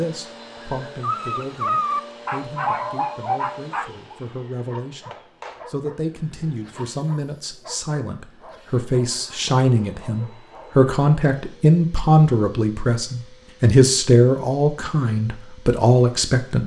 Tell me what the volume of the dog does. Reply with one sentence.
The volume of the dog goes down.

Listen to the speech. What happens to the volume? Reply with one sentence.
The loudness of the speech goes up.